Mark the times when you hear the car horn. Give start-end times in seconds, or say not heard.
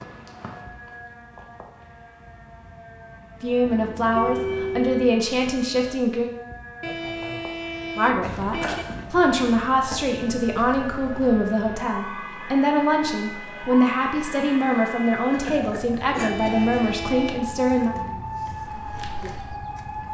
3.6-5.2, 6.8-8.8, 16.2-17.4.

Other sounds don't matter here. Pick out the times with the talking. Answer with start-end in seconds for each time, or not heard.
3.4-6.3, 8.0-17.9.